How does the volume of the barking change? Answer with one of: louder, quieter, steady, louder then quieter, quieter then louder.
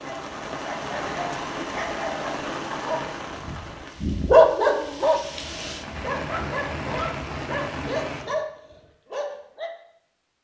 louder then quieter.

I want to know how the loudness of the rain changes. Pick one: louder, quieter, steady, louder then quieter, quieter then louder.
quieter then louder.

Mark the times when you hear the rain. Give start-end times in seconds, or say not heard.
0.0-8.3.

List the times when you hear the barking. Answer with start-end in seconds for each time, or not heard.
0.0-9.7.